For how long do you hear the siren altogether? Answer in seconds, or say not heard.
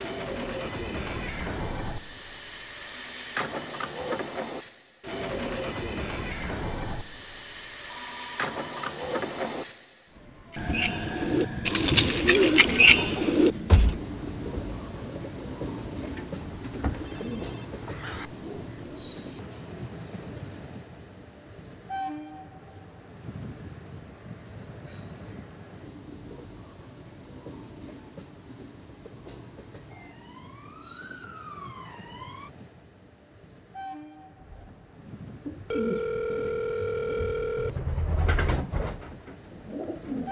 3 s.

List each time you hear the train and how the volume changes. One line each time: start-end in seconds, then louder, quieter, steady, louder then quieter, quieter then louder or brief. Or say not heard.
0.0-40.2 quieter.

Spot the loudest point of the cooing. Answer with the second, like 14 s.
13 s.